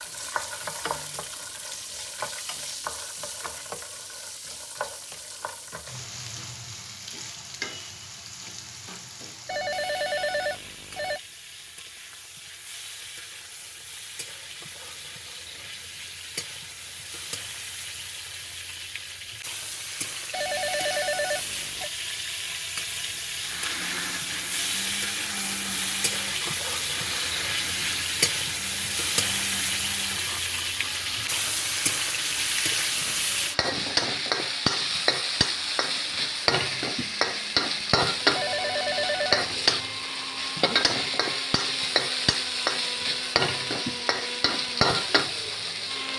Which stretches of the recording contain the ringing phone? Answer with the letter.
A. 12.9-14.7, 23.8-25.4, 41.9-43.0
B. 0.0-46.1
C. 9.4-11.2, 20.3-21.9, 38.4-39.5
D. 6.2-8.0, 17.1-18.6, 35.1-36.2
C.